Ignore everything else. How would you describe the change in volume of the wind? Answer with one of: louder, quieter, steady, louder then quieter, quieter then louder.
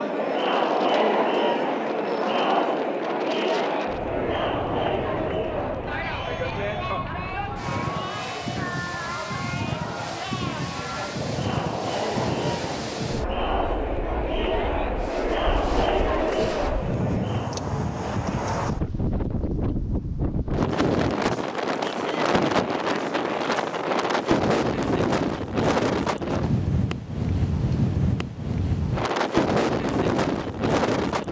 louder.